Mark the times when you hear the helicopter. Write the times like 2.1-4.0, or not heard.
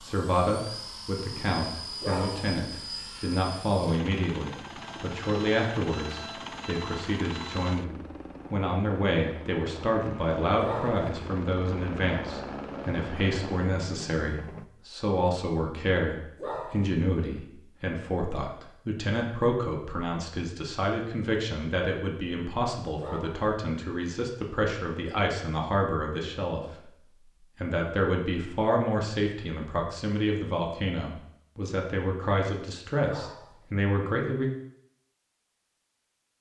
0.0-14.7.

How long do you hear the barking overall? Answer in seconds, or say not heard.
3 s.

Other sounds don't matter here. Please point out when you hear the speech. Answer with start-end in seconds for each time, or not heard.
0.0-26.9, 27.6-34.5.